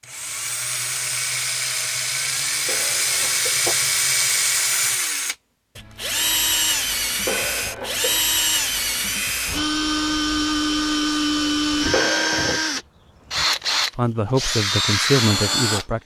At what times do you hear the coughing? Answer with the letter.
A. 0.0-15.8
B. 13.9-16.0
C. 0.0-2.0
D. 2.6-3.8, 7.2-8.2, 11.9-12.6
D.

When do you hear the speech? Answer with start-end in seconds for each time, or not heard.
13.9-16.0.